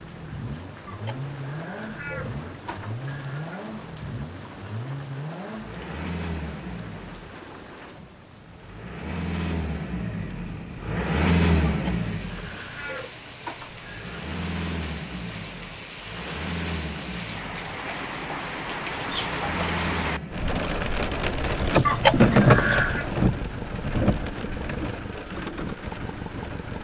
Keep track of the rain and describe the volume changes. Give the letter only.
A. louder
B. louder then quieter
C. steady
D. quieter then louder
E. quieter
A.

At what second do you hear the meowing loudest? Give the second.
22 s.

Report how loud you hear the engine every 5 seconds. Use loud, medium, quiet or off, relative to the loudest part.
medium, medium, loud, medium, medium, medium.